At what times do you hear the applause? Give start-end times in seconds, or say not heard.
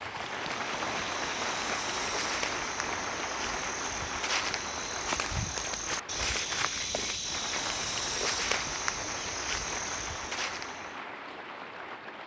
0.0-12.2.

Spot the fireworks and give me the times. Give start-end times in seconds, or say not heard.
not heard.